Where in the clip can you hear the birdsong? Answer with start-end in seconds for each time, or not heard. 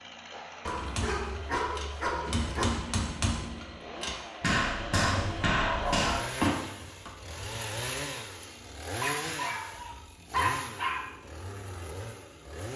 not heard.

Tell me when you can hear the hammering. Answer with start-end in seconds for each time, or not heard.
0.7-7.1.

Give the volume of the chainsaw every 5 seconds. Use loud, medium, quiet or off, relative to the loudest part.
medium, loud, loud.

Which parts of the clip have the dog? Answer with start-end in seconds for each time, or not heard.
0.7-2.6, 4.9-6.3, 9.0-11.0.